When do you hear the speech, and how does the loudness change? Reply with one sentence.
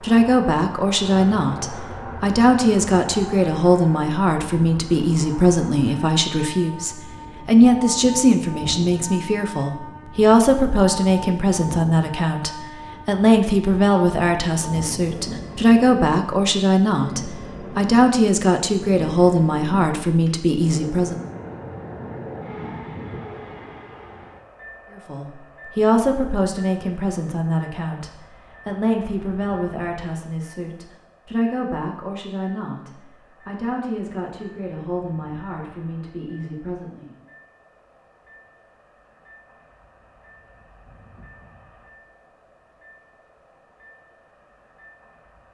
The speech can be heard from 0.0 to 21.2 s, at a steady volume; and from 24.9 to 37.1 s, getting quieter.